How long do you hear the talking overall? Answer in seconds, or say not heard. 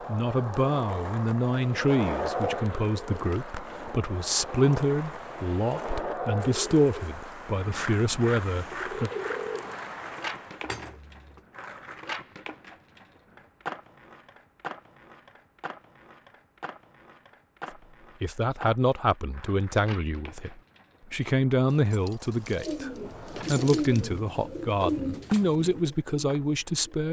18 s.